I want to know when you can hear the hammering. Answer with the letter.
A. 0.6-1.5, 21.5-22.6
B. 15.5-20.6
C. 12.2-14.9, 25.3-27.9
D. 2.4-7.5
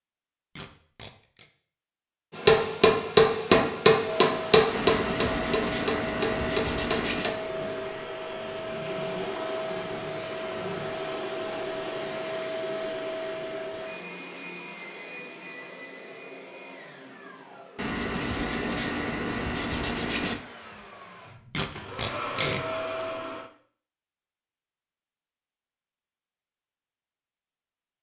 D.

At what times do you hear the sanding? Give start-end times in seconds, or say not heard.
4.7-7.3, 17.8-20.4.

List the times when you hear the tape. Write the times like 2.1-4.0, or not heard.
0.6-1.5, 21.5-22.6.